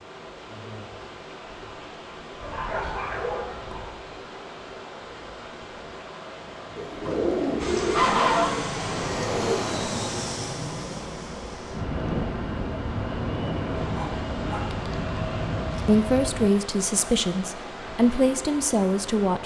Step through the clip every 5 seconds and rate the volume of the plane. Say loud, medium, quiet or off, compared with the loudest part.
off, loud, loud, loud.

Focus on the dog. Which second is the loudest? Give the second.
8 s.